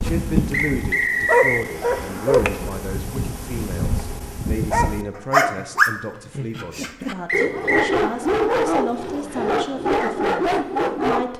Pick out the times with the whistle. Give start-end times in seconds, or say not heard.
0.5-1.6, 7.2-8.0.